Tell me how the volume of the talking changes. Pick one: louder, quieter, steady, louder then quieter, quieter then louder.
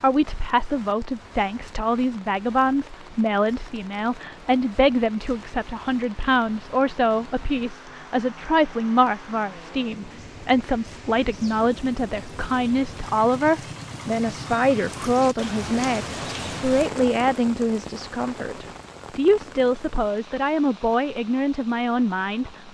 steady.